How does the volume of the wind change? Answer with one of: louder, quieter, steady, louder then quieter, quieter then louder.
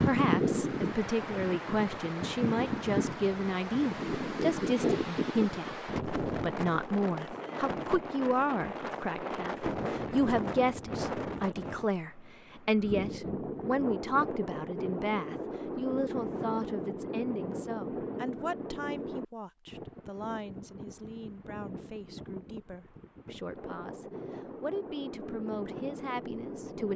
quieter.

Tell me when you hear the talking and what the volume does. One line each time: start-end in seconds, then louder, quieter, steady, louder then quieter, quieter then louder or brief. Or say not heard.
0.0-26.9 quieter.